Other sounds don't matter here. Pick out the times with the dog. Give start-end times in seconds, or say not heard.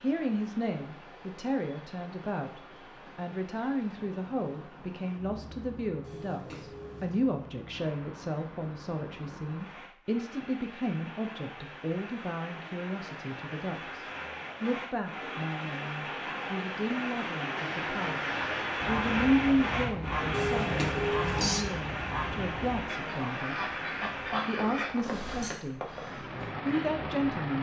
not heard.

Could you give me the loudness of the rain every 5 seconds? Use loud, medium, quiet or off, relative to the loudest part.
quiet, quiet, medium, loud, loud, medium.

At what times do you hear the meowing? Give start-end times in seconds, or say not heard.
6.0-7.2, 20.3-21.6.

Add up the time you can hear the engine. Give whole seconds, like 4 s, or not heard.
2 s.